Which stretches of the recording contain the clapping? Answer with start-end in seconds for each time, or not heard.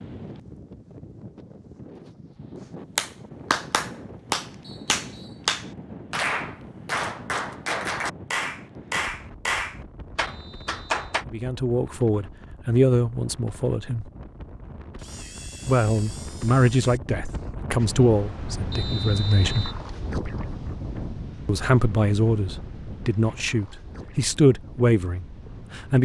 3.0-11.2.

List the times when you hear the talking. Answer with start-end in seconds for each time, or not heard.
11.2-14.1, 15.7-19.8, 21.4-25.9.